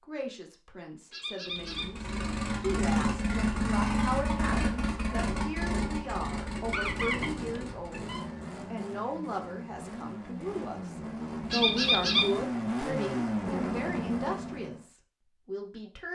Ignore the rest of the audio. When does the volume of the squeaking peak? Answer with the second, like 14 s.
12 s.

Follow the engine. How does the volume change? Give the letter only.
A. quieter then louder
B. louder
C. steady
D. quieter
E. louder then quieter
A.